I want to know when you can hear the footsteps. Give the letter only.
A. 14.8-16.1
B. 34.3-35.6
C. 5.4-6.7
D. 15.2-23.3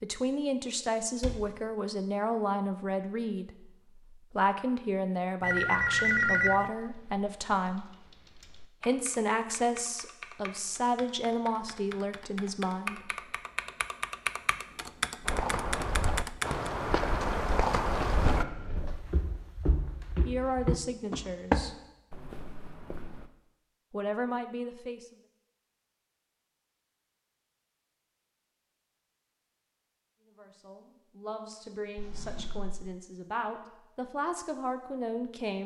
D.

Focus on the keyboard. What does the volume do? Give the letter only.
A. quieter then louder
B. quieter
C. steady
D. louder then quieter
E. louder
E.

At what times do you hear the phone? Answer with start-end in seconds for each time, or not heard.
5.4-6.7.